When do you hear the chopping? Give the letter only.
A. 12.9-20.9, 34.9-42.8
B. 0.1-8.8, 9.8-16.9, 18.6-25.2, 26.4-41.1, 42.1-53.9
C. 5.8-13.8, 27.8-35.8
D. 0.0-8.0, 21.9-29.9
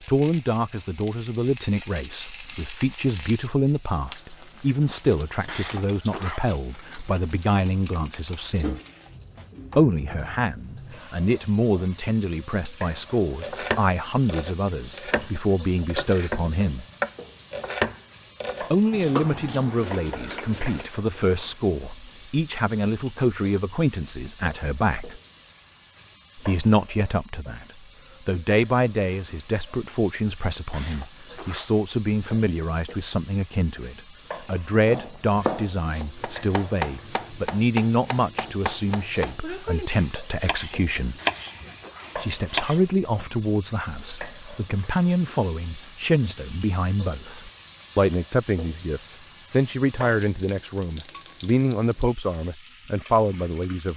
A.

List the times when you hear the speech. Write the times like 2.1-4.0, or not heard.
0.1-8.8, 9.8-16.9, 18.6-25.2, 26.4-41.1, 42.1-53.9.